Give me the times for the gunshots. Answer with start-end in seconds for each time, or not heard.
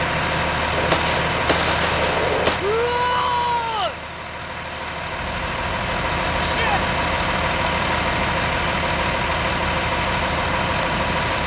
0.7-2.6.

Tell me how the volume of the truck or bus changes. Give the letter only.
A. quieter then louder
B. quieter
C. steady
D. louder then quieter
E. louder
A.